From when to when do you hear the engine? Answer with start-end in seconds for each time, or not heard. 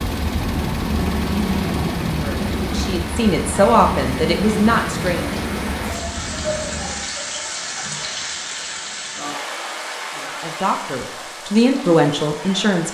0.0-7.2.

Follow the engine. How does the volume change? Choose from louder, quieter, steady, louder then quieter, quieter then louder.
quieter.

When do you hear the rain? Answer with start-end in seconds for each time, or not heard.
0.0-12.8.